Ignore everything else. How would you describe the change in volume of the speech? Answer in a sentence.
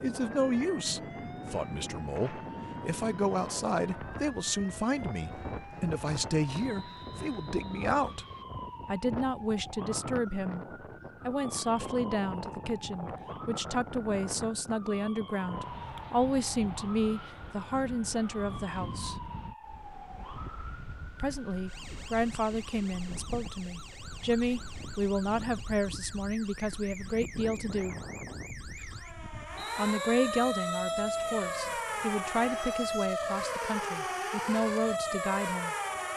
The loudness of the speech stays about the same.